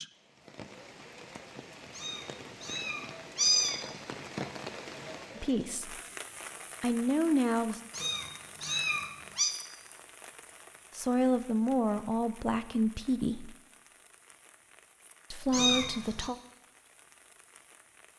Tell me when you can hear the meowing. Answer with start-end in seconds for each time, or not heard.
1.9-4.0, 8.0-9.5, 15.5-16.2.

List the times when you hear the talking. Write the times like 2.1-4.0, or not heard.
5.3-6.0, 6.8-7.8, 10.9-13.6, 15.3-16.4.